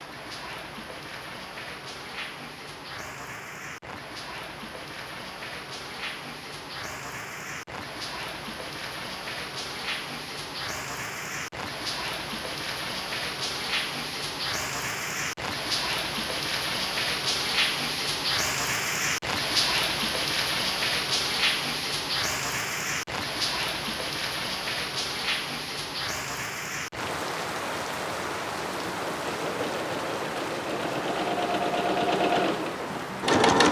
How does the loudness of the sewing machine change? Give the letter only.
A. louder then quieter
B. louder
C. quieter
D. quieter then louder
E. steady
A.